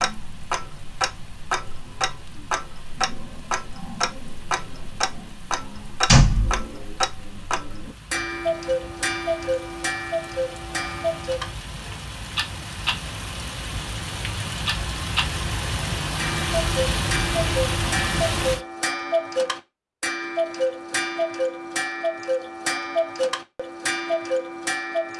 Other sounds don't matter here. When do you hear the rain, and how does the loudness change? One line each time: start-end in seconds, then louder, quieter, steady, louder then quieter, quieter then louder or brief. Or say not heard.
0.0-18.6 louder.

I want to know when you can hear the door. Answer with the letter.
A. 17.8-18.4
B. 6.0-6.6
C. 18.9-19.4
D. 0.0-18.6
B.